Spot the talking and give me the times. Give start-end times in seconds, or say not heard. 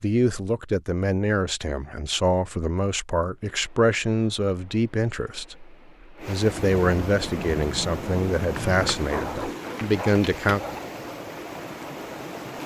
0.0-10.6.